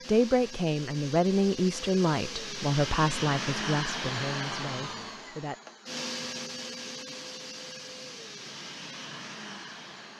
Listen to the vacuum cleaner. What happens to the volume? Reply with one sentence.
The loudness of the vacuum cleaner goes up, then down.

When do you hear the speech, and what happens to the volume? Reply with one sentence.
You can hear the speech from 0.1 to 5.5 s, getting quieter.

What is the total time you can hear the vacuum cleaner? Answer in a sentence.
The vacuum cleaner can be heard for 10 seconds in total.